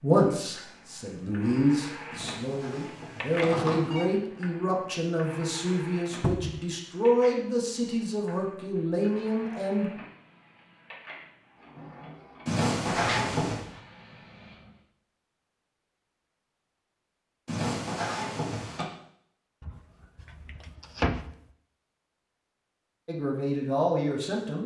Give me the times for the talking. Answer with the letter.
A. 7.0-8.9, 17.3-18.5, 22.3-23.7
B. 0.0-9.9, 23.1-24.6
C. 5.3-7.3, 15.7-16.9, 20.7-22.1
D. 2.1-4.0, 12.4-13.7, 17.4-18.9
B.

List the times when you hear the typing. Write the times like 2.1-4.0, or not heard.
not heard.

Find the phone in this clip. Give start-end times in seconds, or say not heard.
2.1-4.0, 12.4-13.7, 17.4-18.9.